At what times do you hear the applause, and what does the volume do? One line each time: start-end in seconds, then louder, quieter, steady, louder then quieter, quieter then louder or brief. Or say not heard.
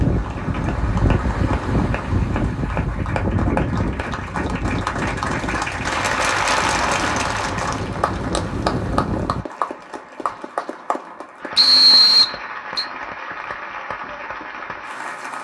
0.0-15.3 louder then quieter.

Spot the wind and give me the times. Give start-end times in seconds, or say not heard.
0.0-9.4.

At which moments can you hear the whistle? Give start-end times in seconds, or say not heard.
11.6-12.8.